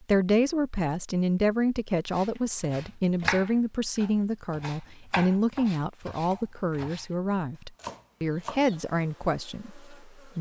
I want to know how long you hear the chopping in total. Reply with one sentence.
You can hear the chopping for 6 seconds altogether.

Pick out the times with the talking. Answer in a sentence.
The talking can be heard from 0.1 to 10.3 s.